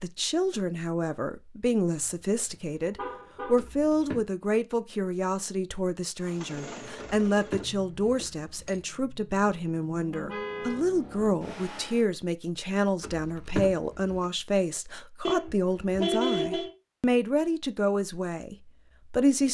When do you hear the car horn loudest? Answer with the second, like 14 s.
16 s.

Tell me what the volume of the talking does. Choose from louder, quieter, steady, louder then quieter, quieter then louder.
steady.